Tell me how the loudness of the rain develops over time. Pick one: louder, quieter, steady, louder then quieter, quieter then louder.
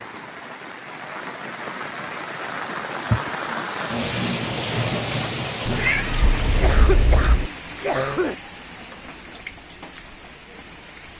louder then quieter.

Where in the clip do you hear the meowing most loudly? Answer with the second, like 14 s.
6 s.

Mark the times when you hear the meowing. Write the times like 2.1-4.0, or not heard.
5.7-7.5.